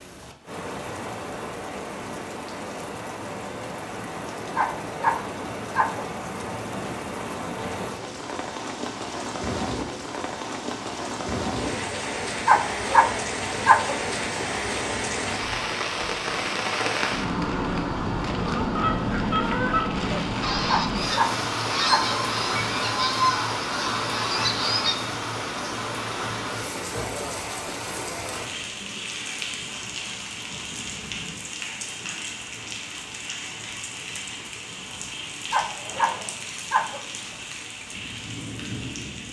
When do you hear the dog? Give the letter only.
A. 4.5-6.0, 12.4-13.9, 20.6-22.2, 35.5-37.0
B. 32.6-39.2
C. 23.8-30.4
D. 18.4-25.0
A.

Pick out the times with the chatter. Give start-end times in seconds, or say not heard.
not heard.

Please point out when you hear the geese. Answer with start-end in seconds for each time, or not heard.
18.4-25.0.